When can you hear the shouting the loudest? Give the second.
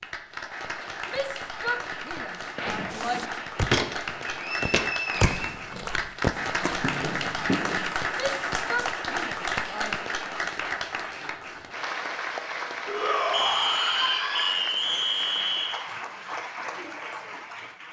13 s.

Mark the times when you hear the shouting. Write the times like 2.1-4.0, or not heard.
1.1-3.4, 8.1-10.1, 12.8-14.7.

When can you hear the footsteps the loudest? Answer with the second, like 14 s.
4 s.